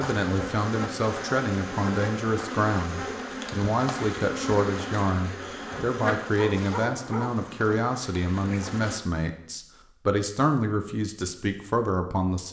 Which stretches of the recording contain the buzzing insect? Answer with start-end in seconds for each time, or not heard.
0.0-9.0.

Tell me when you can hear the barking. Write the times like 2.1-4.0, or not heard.
6.3-7.5.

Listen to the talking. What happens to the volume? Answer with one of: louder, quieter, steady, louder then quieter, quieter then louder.
steady.